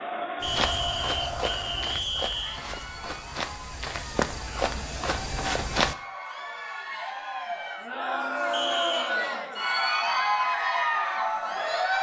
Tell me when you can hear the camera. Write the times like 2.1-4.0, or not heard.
not heard.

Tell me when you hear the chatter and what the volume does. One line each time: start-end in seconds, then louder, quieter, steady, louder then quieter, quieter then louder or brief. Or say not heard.
0.0-11.9 quieter then louder.